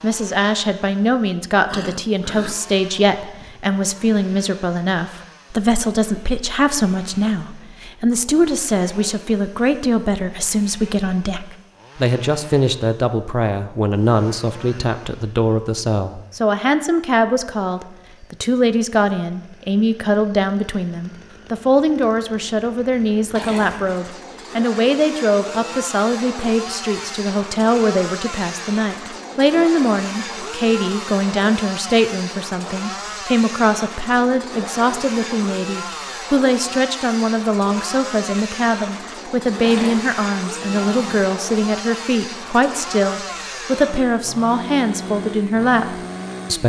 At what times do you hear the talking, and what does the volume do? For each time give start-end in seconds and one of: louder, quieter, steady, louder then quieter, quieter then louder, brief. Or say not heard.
0.0-46.6 steady.